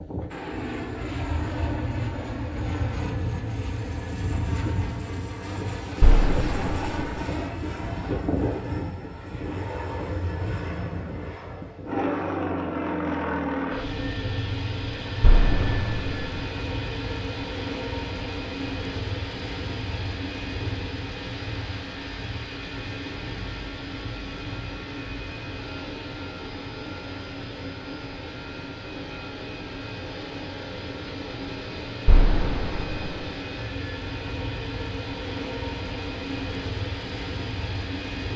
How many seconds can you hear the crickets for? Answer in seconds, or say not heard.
not heard.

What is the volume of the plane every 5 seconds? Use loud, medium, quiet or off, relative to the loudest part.
loud, loud, loud, loud, medium, medium, medium, loud.